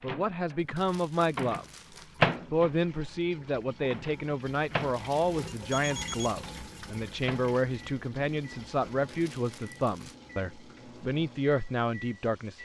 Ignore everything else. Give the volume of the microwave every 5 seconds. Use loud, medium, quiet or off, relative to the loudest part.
loud, quiet, quiet.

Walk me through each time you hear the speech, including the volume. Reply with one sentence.
You can hear the speech briefly from 0.0 to 1.6 s; and from 2.5 to 12.6 s, at a steady volume.